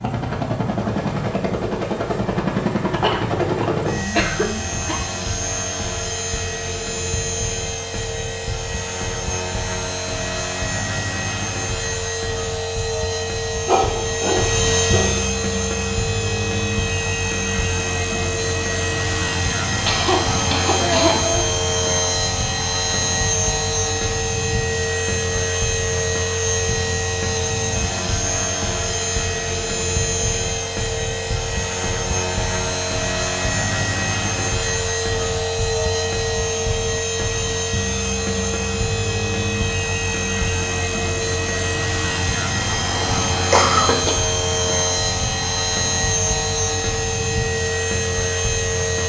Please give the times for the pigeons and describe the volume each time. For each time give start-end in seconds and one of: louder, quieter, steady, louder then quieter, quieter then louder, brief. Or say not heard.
not heard.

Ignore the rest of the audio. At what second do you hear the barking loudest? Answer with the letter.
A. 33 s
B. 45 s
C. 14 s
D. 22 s
C.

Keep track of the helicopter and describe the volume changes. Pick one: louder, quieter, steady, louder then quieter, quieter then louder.
steady.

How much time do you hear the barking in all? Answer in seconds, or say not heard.
2 s.